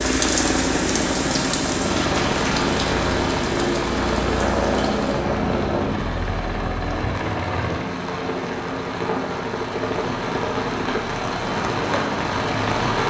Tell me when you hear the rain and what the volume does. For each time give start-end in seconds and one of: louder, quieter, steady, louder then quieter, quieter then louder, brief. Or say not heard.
0.0-13.0 quieter then louder.